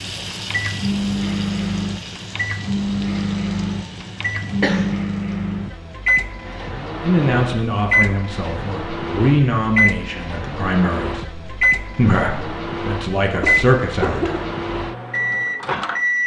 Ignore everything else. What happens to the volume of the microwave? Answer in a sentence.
The volume of the microwave stays about the same.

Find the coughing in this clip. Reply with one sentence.
The coughing can be heard from 4.0 to 5.0 s and from 13.4 to 14.4 s.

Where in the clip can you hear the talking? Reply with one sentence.
The talking can be heard from 7.0 to 14.4 s.